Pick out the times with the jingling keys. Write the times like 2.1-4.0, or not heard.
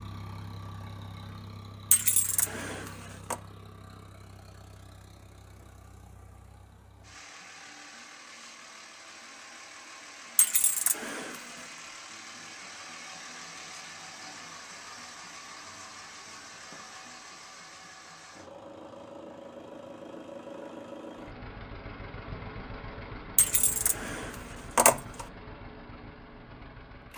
1.9-3.4, 10.3-11.4, 23.4-25.2.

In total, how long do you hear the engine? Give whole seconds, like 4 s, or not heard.
27 s.